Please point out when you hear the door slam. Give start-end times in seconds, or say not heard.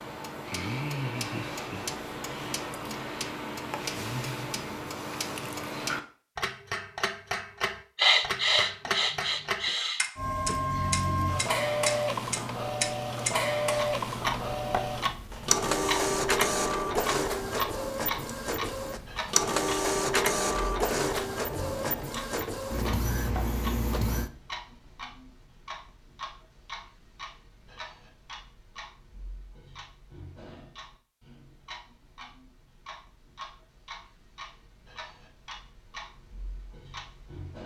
not heard.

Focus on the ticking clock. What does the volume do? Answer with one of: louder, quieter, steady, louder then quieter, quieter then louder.
quieter.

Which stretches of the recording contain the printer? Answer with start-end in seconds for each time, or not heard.
10.2-24.3.